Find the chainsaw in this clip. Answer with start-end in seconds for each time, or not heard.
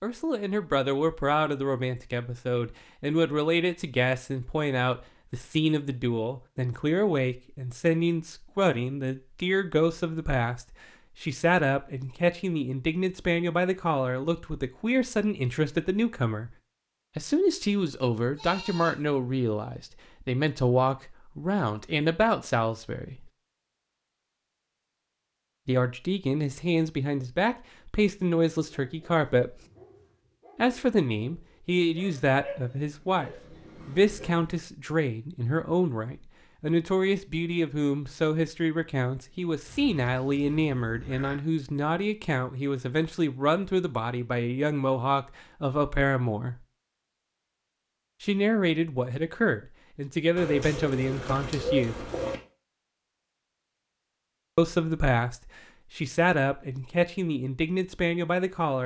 not heard.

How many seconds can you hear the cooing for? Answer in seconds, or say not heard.
2 s.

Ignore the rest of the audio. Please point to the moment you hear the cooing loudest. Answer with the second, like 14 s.
52 s.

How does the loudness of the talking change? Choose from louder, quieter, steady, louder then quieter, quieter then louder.
steady.